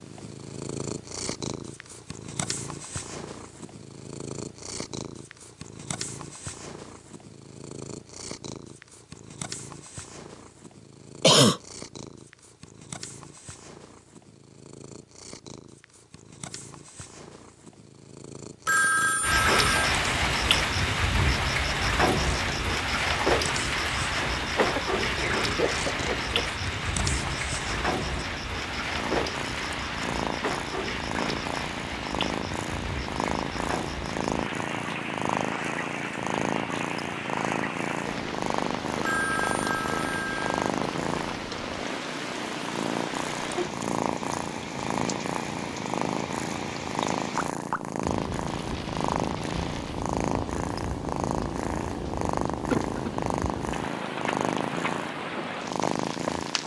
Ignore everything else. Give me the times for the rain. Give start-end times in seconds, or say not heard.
19.2-56.6.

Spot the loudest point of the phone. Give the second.
19 s.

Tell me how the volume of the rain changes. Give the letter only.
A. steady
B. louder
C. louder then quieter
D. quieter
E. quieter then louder
D.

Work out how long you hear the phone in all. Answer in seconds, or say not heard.
3 s.